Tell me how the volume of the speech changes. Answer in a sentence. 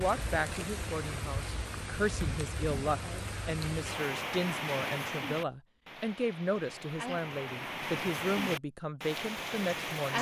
The volume of the speech stays about the same.